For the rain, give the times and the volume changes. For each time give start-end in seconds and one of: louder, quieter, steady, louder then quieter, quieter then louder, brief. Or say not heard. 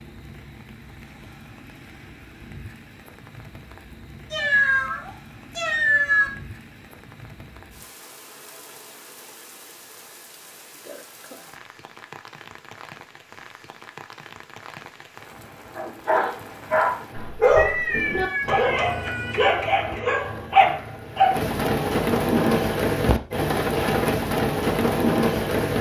0.0-25.7 louder.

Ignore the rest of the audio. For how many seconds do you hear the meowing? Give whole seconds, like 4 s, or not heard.
4 s.